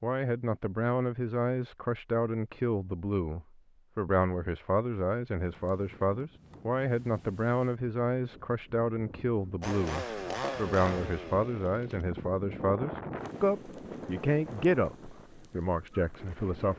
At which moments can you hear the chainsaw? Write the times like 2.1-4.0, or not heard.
9.6-12.1.